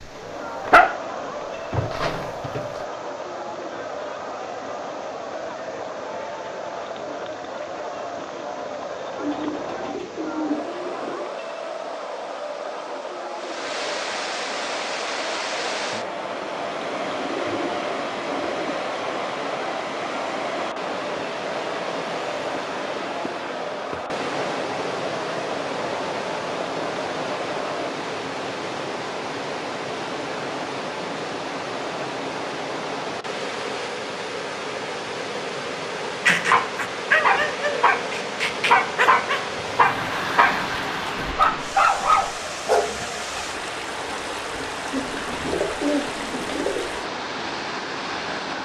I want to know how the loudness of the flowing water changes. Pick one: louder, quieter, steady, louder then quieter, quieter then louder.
louder.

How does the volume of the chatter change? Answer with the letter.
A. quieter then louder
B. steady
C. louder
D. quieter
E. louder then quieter
B.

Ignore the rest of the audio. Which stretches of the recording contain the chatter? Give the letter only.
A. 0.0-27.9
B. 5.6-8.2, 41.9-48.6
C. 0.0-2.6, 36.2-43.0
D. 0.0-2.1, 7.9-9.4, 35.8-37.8
A.